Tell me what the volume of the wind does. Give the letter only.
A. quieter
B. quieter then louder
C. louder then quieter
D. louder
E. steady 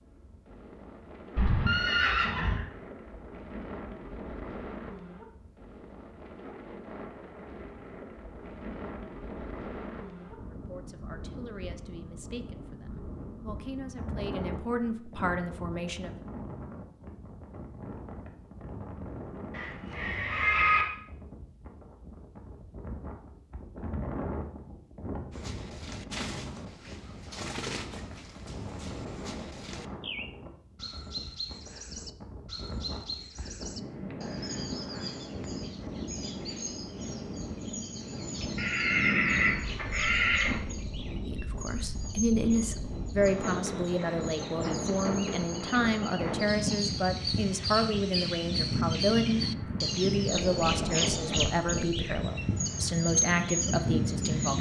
D.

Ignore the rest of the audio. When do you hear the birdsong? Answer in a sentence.
You can hear the birdsong from 25.3 to 54.5 s.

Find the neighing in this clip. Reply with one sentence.
The neighing can be heard from 1.4 to 2.6 s, from 19.5 to 20.9 s and from 38.5 to 40.6 s.